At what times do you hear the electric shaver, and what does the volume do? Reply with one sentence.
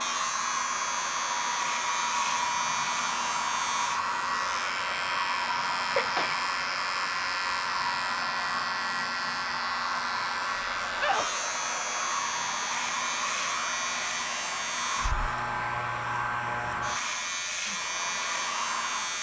You can hear the electric shaver from 0.0 to 19.1 s, at a steady volume.